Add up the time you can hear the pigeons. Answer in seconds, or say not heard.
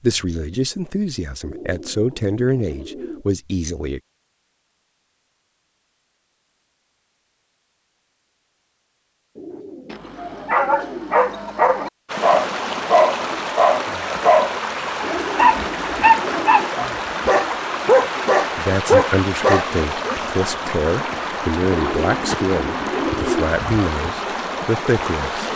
7 s.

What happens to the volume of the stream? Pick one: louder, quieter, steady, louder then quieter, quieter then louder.
steady.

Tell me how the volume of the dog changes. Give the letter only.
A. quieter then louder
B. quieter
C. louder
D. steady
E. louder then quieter
C.